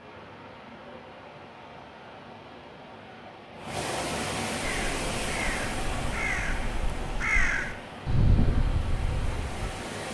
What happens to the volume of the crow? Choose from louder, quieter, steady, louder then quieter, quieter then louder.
louder then quieter.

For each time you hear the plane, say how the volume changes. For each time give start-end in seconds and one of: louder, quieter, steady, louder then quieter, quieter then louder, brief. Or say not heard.
not heard.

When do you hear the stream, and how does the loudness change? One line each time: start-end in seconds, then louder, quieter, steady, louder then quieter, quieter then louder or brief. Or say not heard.
0.0-10.0 louder then quieter.